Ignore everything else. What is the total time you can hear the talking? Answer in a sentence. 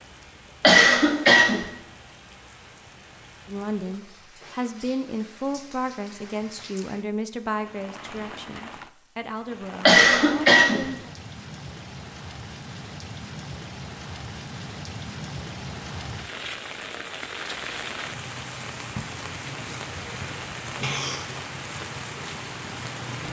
You can hear the talking for 8 seconds altogether.